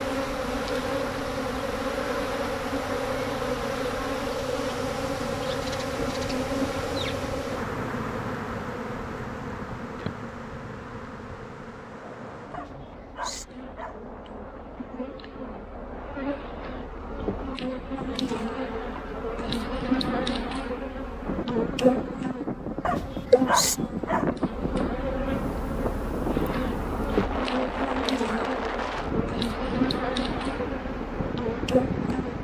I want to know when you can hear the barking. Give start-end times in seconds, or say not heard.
12.5-14.1, 22.8-24.4.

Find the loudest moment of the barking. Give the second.
24 s.